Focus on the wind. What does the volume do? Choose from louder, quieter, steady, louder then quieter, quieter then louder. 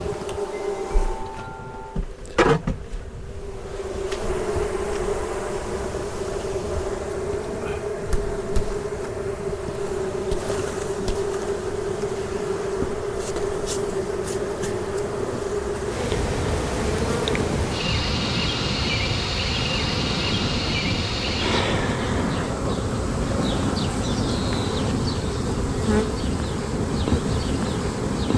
louder.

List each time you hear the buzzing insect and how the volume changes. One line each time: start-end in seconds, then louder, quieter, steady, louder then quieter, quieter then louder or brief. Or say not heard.
0.0-28.3 steady.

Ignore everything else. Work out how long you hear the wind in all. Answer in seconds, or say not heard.
28 s.